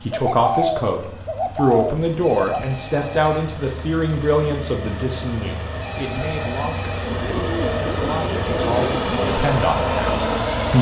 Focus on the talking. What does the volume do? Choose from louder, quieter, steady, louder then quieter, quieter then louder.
quieter then louder.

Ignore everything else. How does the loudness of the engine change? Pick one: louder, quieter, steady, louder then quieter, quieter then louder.
louder.